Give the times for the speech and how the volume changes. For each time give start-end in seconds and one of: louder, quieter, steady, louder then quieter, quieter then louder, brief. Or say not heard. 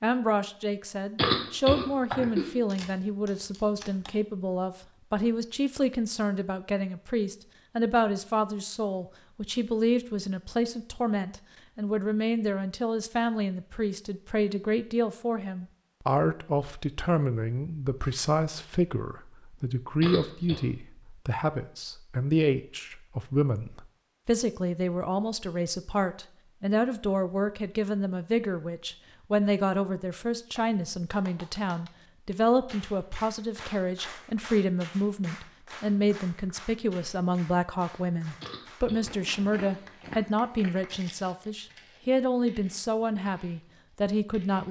0.0-44.6 steady.